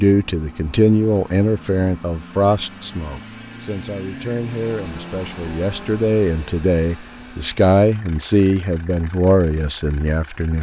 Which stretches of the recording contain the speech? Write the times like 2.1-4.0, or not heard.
0.0-10.5.